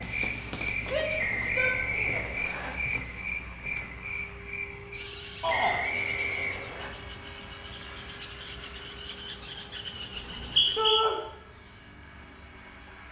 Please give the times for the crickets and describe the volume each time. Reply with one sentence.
You can hear the crickets from 0.0 to 13.0 s, getting quieter then louder.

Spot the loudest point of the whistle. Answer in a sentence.
The volume of the whistle peaks at 11 seconds.